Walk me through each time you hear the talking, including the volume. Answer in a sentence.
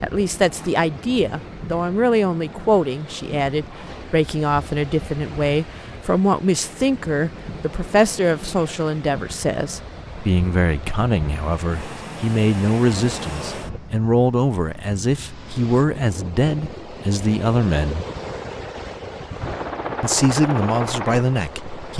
You can hear the talking from 0.0 to 18.1 s, at a steady volume; and briefly from 20.0 to 21.9 s.